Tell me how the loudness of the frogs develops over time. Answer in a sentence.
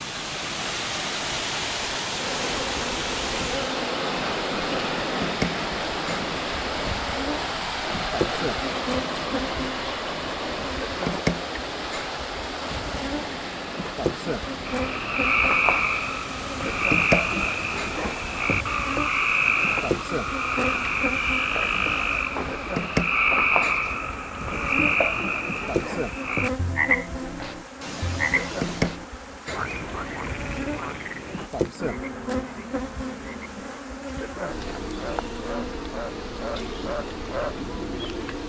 The loudness of the frogs goes down.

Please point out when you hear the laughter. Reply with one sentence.
The laughter can be heard from 27.8 to 29.0 s.